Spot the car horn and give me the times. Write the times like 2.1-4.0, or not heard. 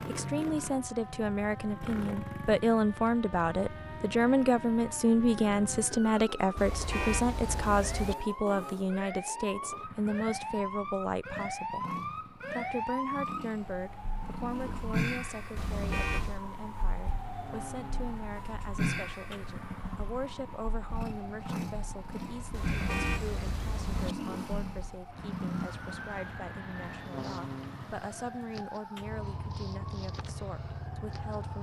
6.5-8.2, 15.6-16.4, 22.5-24.1.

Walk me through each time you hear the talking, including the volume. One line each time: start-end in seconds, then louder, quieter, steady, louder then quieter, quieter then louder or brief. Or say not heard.
0.0-31.5 quieter.